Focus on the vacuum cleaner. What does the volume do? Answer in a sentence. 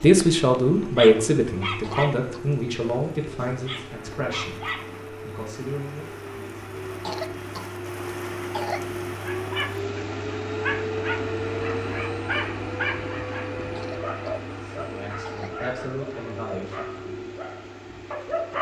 The volume of the vacuum cleaner goes up, then down.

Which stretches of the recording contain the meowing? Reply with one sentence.
The meowing can't be heard in this clip.